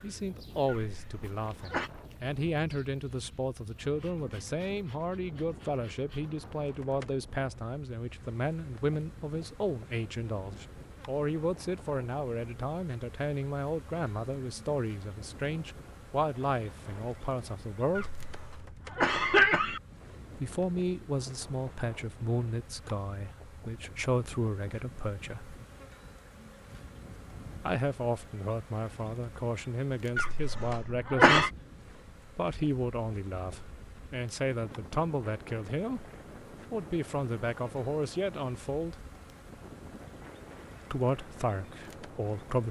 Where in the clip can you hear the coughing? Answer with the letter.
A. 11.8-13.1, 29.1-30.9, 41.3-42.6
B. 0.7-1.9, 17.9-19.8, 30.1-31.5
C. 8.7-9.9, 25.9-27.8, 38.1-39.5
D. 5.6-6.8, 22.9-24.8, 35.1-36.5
B.